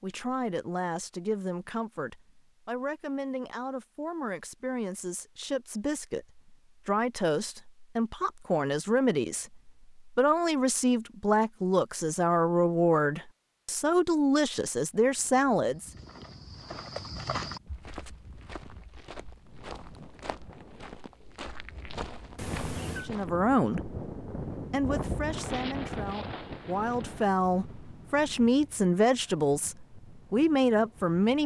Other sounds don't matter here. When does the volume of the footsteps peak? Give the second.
17 s.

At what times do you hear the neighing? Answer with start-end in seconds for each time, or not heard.
22.4-23.1.